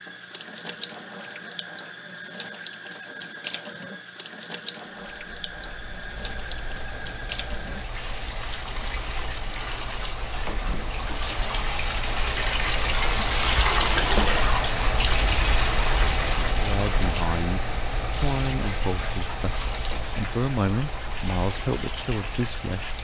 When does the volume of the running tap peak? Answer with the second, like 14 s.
14 s.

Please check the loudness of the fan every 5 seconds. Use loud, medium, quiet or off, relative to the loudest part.
off, medium, loud, loud, medium.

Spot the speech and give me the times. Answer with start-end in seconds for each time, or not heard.
16.6-22.9.